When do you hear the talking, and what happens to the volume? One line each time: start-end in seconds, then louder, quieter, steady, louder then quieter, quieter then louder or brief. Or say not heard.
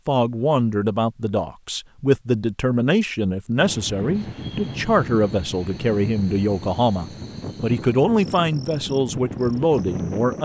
0.1-10.4 steady.